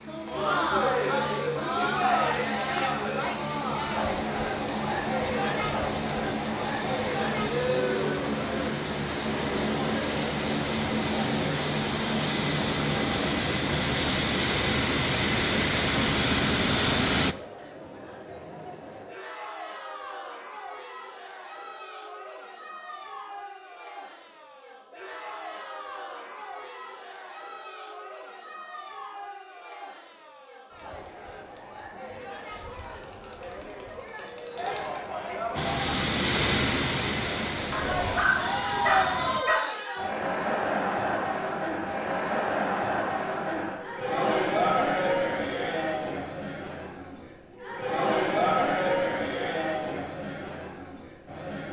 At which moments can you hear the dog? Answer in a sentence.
You can hear the dog from 37.7 to 39.6 s.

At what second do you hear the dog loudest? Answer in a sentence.
The volume of the dog peaks at 39 seconds.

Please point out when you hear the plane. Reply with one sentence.
The plane can be heard from 0.0 to 17.4 s and from 35.5 to 39.5 s.